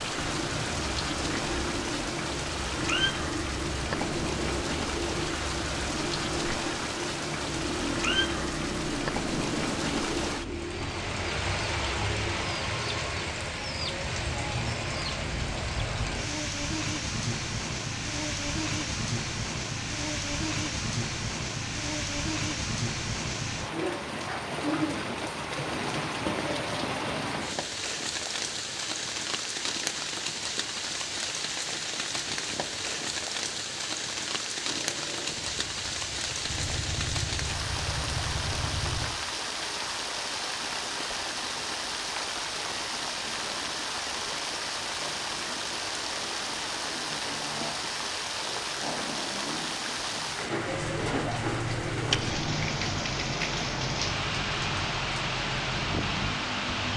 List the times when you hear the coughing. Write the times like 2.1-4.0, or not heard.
not heard.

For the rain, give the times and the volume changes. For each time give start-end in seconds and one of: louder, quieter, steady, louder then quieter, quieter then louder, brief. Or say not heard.
0.0-56.9 steady.